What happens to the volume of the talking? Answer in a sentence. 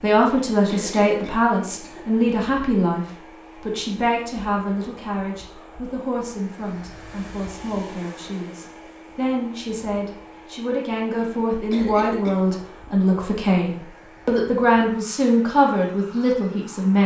The loudness of the talking goes down, then up.